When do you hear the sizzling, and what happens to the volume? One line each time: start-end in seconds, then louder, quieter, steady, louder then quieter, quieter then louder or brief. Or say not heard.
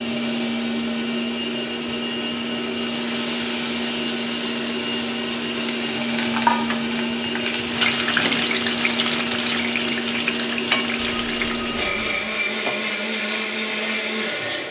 2.8-14.6 louder then quieter.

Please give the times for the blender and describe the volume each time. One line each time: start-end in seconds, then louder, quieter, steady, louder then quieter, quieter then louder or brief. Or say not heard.
0.0-14.6 steady.